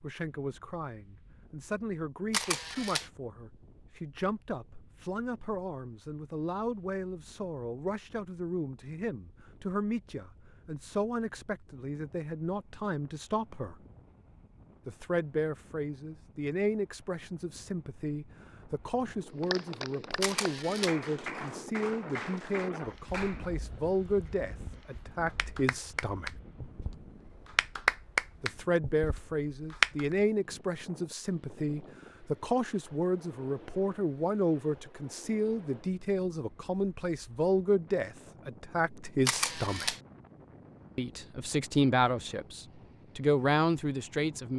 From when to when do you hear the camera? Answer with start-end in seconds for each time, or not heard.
2.3-3.0, 20.2-20.9, 39.2-40.0.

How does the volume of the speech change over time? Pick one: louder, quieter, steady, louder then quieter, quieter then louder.
louder.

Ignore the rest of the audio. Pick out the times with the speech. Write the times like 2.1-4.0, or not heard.
0.0-13.8, 14.8-26.4, 28.4-40.0, 41.0-44.5.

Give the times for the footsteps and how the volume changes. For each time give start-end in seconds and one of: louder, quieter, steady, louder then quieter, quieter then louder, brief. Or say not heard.
not heard.